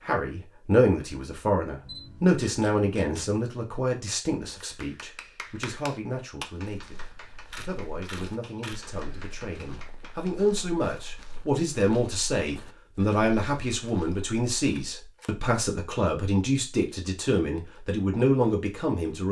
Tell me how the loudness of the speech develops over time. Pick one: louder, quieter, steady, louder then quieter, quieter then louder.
quieter then louder.